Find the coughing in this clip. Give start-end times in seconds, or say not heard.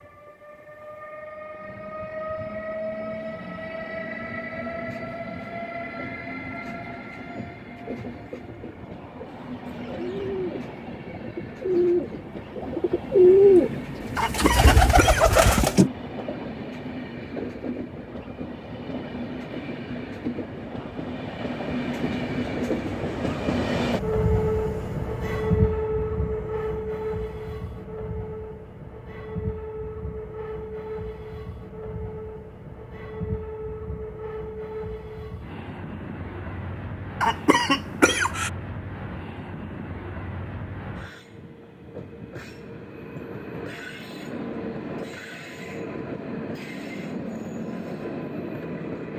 14.2-15.7, 37.2-38.5.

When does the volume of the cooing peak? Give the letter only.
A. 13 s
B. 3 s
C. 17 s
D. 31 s
A.